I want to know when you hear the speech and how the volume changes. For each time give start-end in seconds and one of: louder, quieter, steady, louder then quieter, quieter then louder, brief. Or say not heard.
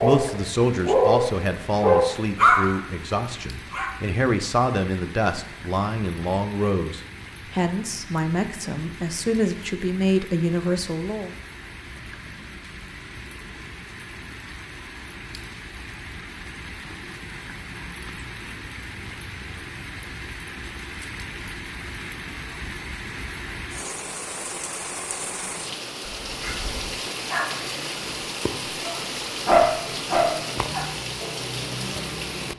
0.0-11.3 steady.